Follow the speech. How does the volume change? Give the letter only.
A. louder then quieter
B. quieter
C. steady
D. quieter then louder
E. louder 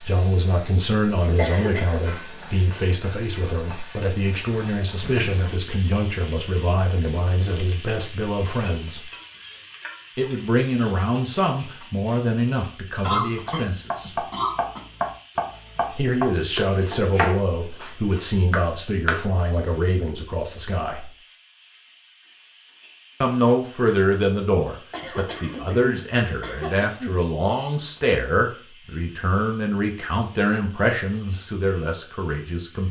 C.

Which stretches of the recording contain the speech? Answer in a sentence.
You can hear the speech from 0.0 to 9.1 s, from 10.2 to 14.1 s, from 15.9 to 21.1 s and from 23.2 to 32.8 s.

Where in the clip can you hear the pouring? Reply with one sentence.
You can't hear the pouring here.